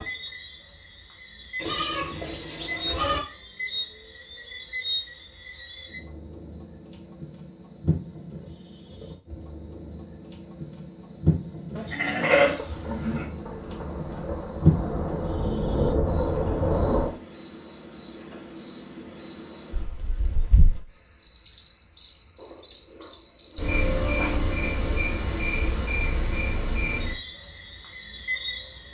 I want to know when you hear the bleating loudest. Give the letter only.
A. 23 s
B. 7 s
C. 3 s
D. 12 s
D.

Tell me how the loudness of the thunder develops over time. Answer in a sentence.
The loudness of the thunder goes up.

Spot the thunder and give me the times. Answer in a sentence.
You can hear the thunder from 12.6 to 17.2 s.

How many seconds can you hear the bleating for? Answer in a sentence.
The bleating can be heard for 5 seconds in total.